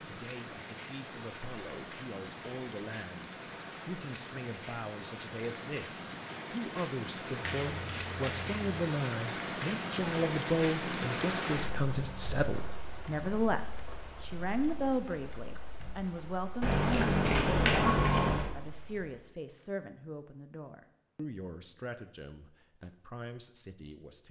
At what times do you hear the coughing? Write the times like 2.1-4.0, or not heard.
not heard.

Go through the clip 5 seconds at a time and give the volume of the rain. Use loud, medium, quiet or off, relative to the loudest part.
medium, loud, loud, quiet, off.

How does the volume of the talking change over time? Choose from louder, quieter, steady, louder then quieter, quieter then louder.
louder then quieter.